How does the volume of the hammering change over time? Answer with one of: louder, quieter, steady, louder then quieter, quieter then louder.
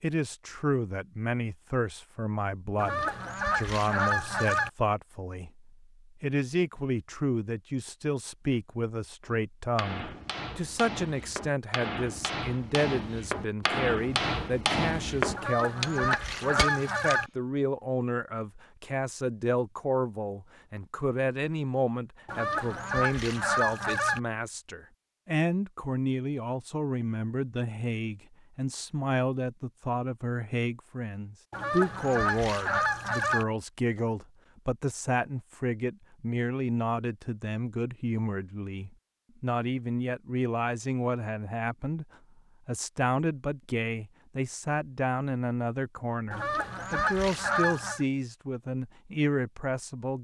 louder.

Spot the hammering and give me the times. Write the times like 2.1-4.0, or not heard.
9.2-17.1.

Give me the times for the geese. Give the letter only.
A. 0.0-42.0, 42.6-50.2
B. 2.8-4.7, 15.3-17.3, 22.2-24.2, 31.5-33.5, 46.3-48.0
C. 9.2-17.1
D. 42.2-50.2
B.